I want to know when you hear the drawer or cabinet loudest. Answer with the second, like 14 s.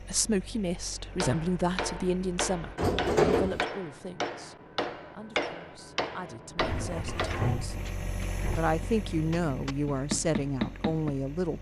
3 s.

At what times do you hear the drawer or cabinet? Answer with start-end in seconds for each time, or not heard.
2.8-3.6, 6.5-8.7.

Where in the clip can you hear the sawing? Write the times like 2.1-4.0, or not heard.
not heard.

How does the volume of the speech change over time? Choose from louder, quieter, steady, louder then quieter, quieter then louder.
quieter then louder.